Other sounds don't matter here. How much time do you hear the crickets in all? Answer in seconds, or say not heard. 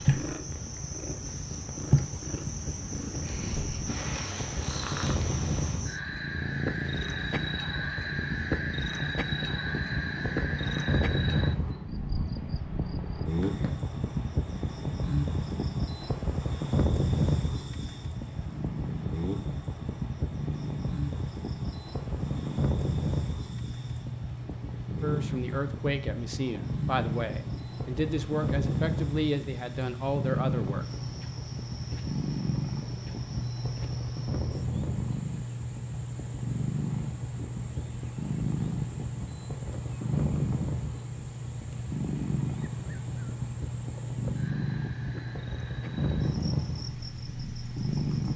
48 s.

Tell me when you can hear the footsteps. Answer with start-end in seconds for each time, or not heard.
not heard.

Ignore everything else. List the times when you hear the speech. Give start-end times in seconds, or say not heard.
25.0-30.9.